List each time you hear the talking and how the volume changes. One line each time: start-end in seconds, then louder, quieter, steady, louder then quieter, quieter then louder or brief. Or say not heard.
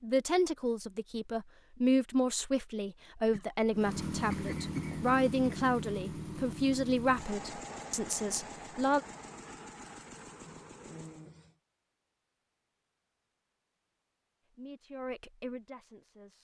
0.0-9.0 steady
14.5-16.3 brief.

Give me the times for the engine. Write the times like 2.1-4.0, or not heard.
3.7-11.3.